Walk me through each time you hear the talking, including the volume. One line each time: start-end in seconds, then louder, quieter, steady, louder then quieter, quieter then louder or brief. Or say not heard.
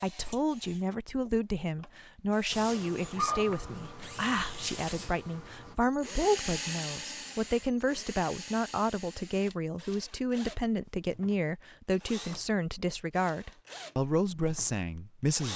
0.0-15.5 steady.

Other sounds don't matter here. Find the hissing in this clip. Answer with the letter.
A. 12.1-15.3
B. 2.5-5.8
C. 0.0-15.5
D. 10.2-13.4
B.